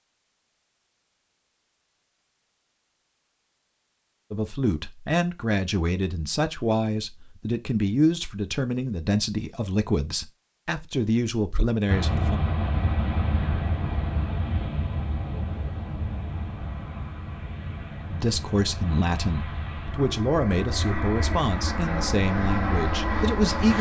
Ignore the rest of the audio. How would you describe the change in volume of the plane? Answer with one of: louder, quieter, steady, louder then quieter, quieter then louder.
quieter then louder.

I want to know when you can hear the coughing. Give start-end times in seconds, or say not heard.
not heard.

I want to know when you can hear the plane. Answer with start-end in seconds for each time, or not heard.
11.8-23.7.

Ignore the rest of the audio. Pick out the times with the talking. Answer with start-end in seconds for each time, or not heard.
4.3-12.4, 18.1-23.7.